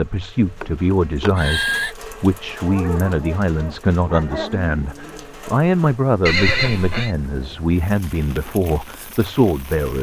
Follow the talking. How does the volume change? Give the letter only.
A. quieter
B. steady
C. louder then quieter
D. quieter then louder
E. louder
B.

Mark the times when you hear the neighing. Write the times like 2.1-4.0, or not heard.
0.4-1.9, 6.2-7.2.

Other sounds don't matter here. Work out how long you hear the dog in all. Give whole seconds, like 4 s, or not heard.
3 s.